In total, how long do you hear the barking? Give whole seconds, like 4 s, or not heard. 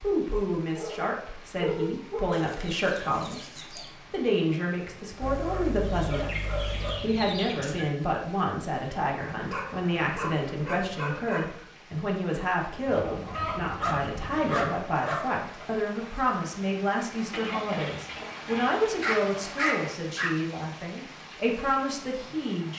9 s.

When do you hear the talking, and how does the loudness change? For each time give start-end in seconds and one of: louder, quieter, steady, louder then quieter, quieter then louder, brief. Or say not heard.
0.0-22.7 steady.